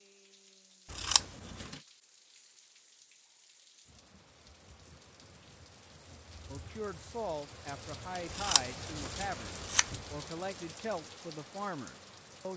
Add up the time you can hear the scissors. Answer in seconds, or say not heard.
2 s.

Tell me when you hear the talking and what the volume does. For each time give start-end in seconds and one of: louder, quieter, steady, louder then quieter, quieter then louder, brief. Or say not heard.
6.5-12.5 steady.